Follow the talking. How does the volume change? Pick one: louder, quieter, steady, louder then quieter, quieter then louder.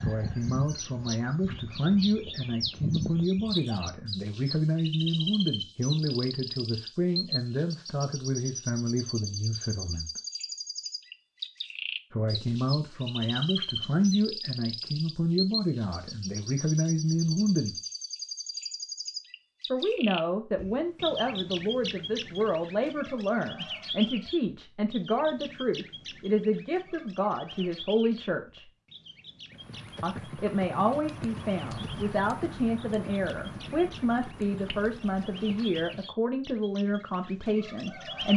steady.